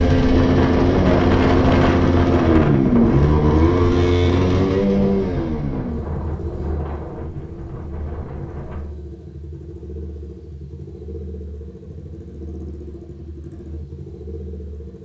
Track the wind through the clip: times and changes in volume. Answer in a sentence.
You can hear the wind from 0.0 to 8.9 s, getting quieter.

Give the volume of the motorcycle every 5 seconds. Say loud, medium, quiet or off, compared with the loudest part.
loud, medium, quiet.